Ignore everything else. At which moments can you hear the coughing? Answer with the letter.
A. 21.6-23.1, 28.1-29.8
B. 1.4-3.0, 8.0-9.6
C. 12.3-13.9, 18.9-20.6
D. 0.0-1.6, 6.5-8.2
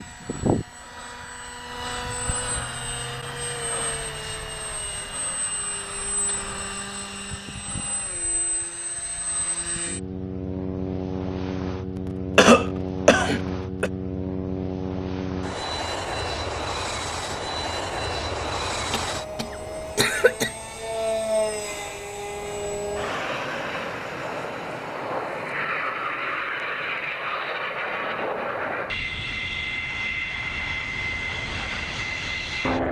C.